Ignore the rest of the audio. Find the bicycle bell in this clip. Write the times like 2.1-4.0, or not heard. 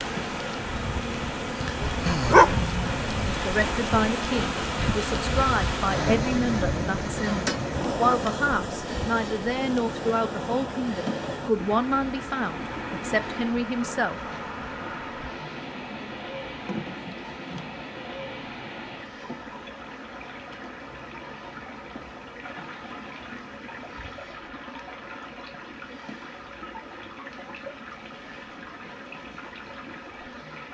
not heard.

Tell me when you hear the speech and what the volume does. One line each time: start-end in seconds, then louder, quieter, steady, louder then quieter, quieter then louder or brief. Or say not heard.
3.2-14.2 steady.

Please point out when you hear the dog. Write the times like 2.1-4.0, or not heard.
1.6-3.4.